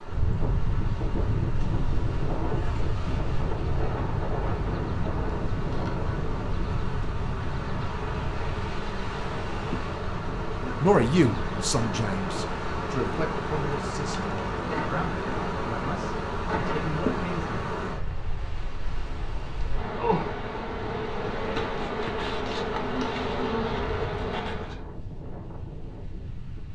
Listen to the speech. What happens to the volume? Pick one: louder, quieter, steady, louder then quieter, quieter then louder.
quieter.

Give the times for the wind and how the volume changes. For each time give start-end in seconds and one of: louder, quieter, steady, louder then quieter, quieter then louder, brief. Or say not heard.
0.0-26.7 quieter.